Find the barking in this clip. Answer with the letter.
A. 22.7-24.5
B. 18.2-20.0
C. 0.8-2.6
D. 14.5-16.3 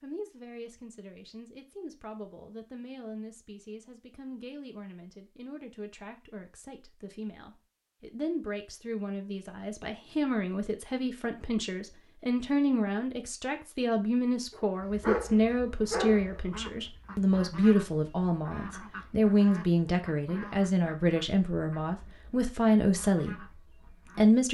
D.